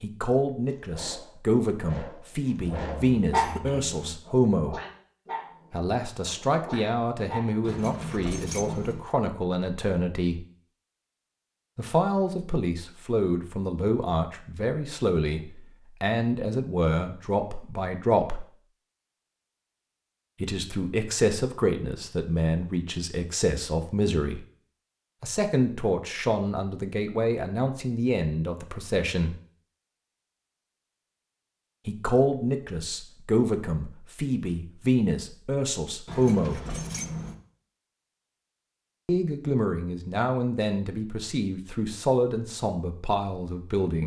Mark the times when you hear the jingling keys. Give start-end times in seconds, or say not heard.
7.6-9.1, 36.0-37.4.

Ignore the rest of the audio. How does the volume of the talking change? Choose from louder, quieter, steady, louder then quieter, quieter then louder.
steady.